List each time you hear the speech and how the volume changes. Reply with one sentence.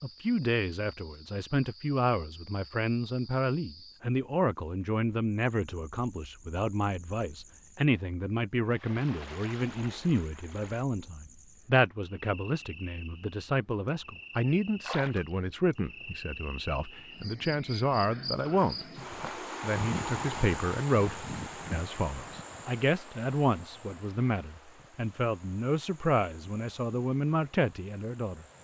You can hear the speech from 0.0 to 18.8 s, at a steady volume; and from 19.6 to 28.4 s, at a steady volume.